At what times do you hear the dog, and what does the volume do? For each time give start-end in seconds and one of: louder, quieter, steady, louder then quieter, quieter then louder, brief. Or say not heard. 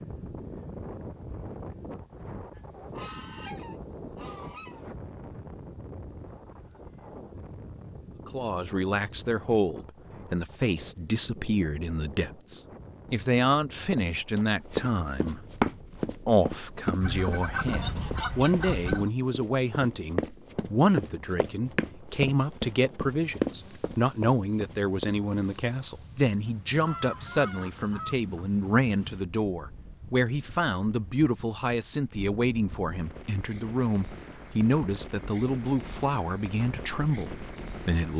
not heard.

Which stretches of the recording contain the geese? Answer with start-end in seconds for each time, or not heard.
2.5-5.0, 17.0-19.1, 26.9-28.4.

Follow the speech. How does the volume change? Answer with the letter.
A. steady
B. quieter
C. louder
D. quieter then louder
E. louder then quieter
A.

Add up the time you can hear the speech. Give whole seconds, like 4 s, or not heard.
30 s.